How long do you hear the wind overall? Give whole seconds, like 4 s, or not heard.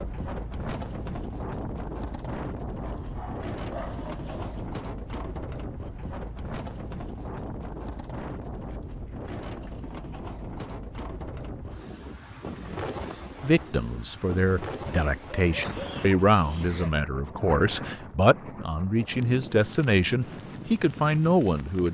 22 s.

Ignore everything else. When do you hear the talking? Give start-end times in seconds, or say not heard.
13.4-21.9.